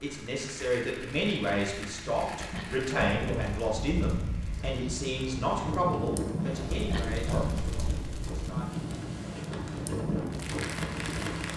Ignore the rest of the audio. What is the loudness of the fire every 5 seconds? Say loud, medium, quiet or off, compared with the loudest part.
medium, loud, loud.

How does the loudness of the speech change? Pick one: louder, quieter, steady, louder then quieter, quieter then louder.
quieter.